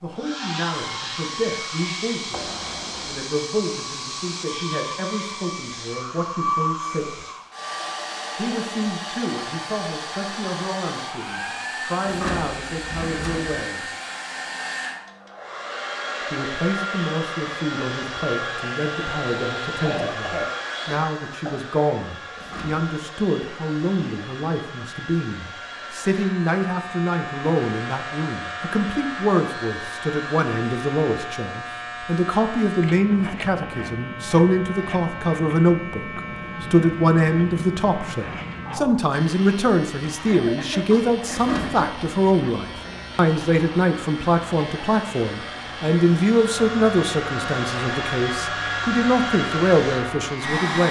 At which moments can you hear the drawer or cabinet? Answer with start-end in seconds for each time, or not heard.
12.1-13.6, 22.4-22.9, 41.3-41.9.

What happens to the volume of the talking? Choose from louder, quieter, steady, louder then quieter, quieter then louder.
louder.